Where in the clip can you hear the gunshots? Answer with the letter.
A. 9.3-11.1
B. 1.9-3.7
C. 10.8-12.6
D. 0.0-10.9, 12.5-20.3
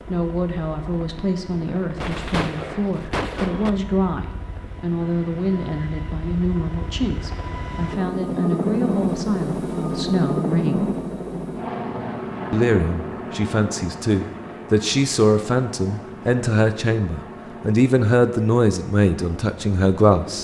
B.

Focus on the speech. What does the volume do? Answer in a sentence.
The loudness of the speech goes up.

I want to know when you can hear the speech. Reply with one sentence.
You can hear the speech from 0.0 to 10.9 s and from 12.5 to 20.3 s.